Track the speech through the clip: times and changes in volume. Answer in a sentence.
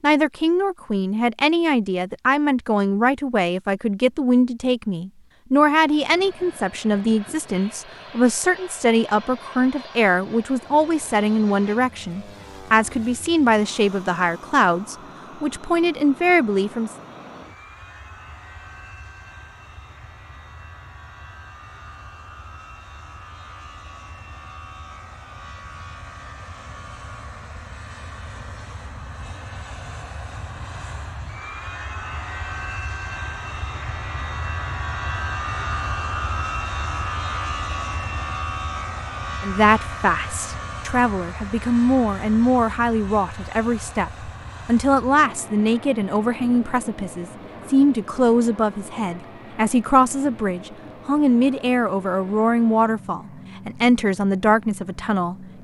The speech can be heard from 0.0 to 16.9 s, at a steady volume; and from 39.4 to 55.5 s, at a steady volume.